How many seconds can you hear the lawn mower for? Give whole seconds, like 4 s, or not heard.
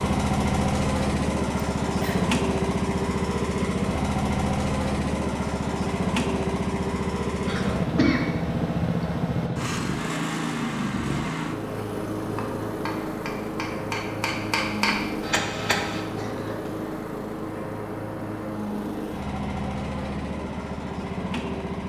22 s.